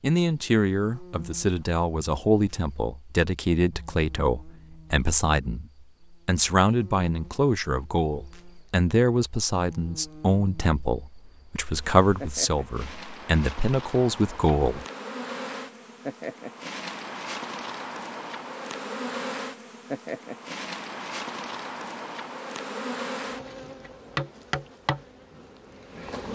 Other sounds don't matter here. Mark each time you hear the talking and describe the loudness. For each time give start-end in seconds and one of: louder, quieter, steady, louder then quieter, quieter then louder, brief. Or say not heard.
0.0-14.8 steady.